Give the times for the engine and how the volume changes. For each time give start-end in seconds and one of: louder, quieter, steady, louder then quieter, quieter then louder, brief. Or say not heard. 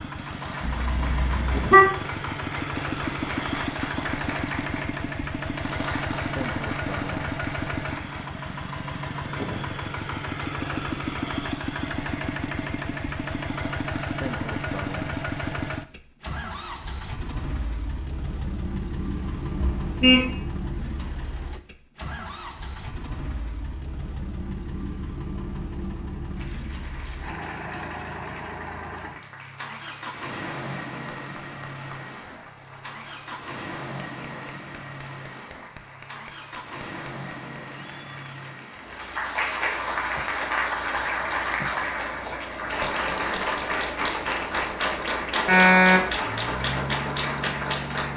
0.0-48.1 quieter.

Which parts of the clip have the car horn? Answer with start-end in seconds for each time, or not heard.
0.6-1.9, 19.2-20.3, 45.5-46.1.